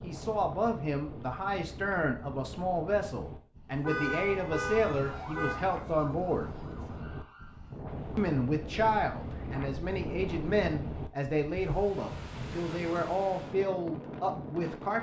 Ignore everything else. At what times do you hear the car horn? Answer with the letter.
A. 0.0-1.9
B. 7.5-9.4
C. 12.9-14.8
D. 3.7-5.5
D.